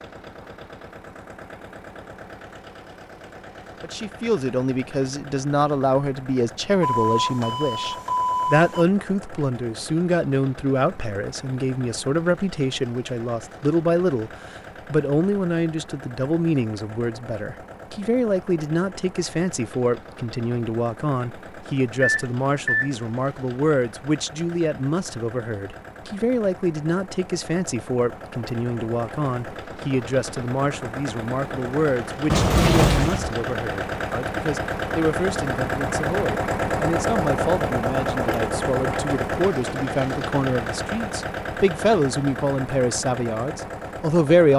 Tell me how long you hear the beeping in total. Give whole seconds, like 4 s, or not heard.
4 s.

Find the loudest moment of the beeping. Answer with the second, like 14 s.
33 s.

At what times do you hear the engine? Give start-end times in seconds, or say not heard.
0.0-44.5.